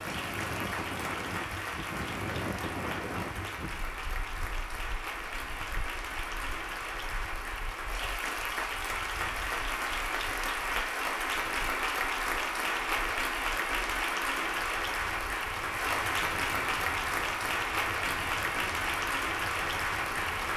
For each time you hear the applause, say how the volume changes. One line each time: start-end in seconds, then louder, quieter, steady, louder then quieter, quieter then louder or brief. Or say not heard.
0.0-20.5 louder.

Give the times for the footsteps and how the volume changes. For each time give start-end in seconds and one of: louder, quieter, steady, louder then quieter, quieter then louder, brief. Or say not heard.
not heard.